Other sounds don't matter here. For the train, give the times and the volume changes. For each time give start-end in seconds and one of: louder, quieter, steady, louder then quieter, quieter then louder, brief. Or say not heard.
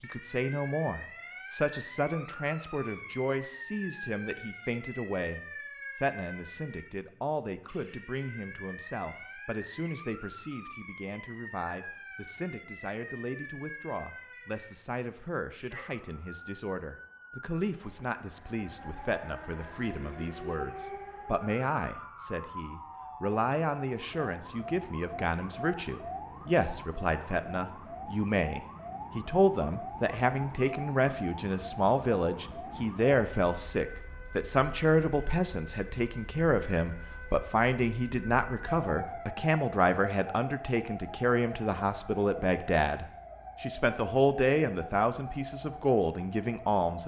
not heard.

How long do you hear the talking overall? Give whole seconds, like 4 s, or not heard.
47 s.